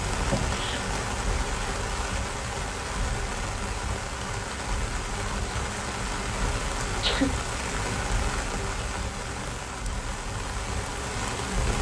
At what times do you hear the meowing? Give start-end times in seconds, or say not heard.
not heard.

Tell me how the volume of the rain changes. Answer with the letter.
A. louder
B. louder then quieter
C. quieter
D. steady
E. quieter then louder
D.